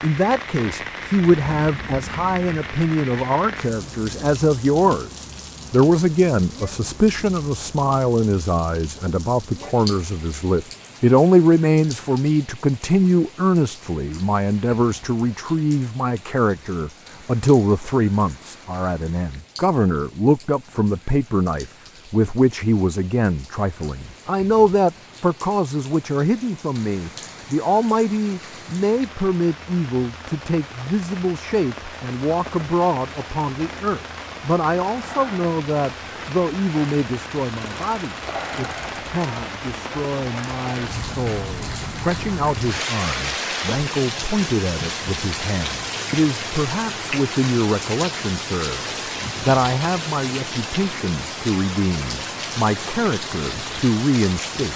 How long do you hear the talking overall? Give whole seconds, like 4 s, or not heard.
55 s.